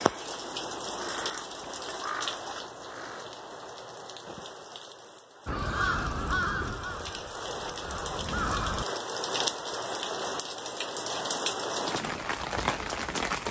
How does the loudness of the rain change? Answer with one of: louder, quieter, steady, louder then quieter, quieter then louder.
quieter then louder.